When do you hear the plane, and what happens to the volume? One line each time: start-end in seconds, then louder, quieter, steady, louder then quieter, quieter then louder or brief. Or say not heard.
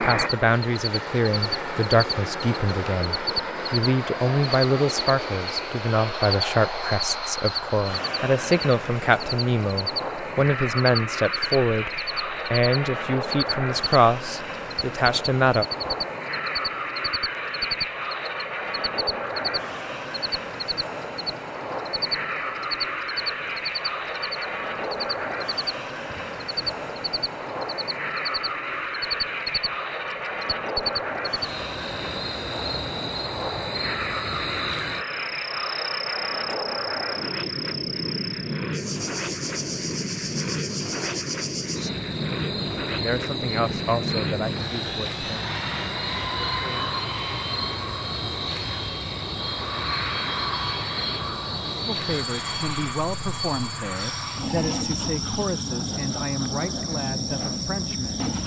0.0-58.4 steady.